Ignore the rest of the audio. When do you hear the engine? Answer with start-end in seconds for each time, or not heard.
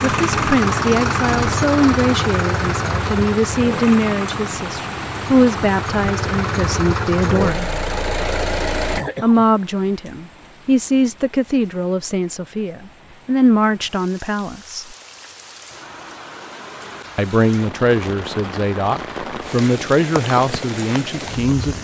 0.0-9.0.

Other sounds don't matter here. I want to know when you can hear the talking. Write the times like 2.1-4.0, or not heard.
0.0-7.7, 9.2-14.9, 17.1-21.7.